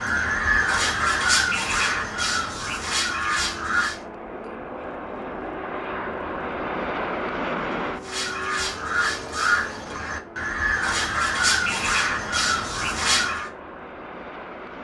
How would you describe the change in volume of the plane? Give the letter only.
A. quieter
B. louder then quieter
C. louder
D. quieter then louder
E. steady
B.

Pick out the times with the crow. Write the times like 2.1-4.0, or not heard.
0.0-4.0, 8.0-13.5.